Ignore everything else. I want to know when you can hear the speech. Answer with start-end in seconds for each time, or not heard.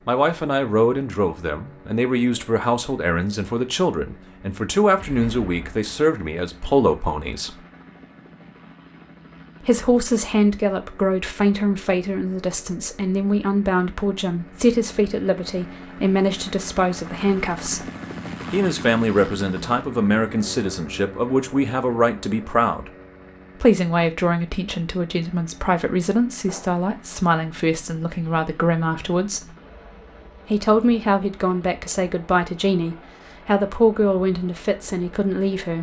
0.1-7.6, 9.6-17.9, 18.5-22.9, 23.6-29.6, 30.4-35.7.